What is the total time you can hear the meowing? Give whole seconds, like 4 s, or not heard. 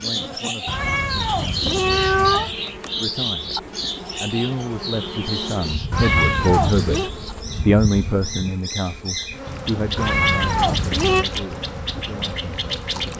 4 s.